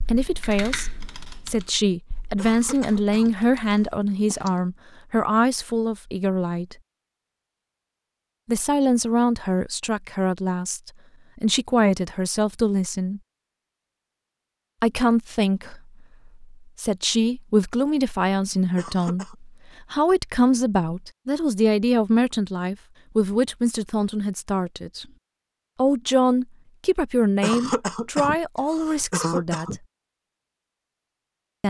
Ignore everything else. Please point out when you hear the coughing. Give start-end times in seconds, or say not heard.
2.4-3.9, 18.8-19.4, 27.4-29.8.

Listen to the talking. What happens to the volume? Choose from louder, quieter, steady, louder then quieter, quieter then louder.
steady.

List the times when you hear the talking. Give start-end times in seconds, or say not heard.
0.0-6.8, 8.4-13.2, 14.8-25.1, 25.8-29.8.